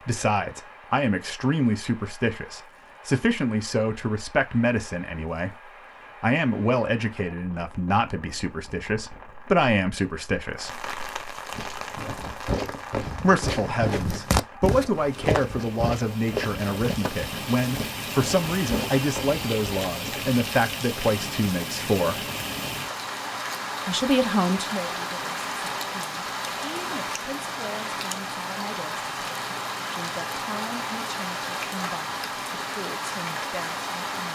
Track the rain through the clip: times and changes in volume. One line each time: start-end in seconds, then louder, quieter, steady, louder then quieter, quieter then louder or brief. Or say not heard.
0.0-34.3 louder.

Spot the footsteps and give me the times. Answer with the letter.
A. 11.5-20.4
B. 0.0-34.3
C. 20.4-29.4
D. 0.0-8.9
A.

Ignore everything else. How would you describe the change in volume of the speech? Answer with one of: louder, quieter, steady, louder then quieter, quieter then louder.
quieter.